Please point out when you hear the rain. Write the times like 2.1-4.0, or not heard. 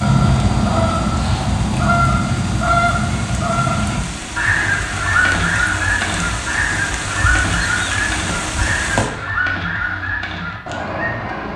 0.0-9.1.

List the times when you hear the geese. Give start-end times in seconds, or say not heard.
0.0-11.5.